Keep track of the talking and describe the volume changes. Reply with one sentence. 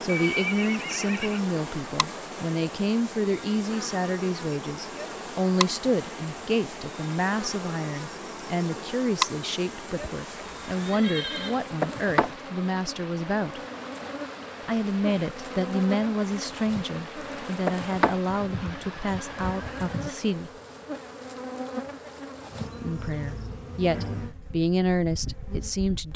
The volume of the talking stays about the same.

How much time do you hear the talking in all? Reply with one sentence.
You can hear the talking for 23 seconds altogether.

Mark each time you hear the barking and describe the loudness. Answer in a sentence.
You can't hear the barking here.